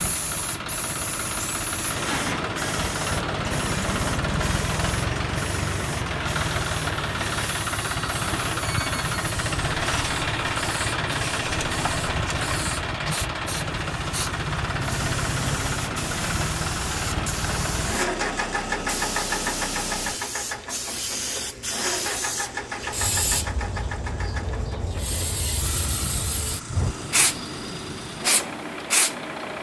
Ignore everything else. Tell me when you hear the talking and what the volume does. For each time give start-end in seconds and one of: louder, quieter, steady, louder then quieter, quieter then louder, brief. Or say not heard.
not heard.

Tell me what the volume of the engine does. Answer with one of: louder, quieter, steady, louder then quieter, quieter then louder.
quieter.